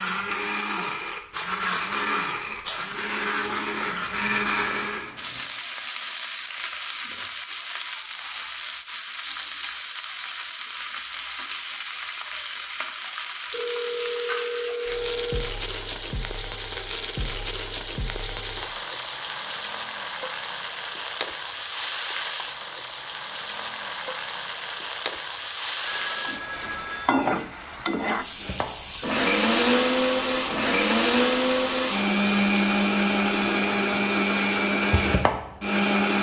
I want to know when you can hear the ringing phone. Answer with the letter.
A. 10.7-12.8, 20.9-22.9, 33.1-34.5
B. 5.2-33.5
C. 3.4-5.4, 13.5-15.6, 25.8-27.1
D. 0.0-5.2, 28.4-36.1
C.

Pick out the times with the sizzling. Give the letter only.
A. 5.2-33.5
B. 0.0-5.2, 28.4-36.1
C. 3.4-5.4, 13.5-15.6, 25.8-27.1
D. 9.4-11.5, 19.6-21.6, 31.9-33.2
A.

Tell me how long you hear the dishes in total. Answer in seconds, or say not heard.
not heard.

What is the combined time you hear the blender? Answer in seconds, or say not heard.
13 s.